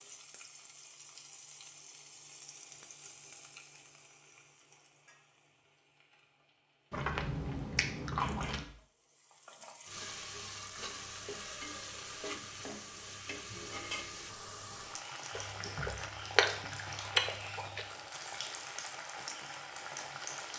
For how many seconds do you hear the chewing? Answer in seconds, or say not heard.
4 s.